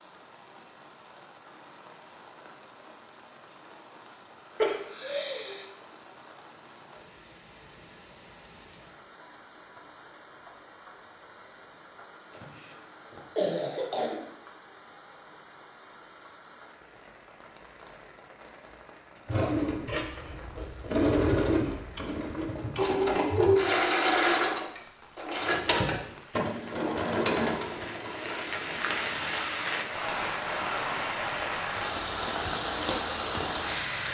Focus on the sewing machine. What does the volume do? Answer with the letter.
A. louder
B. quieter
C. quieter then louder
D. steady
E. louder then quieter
B.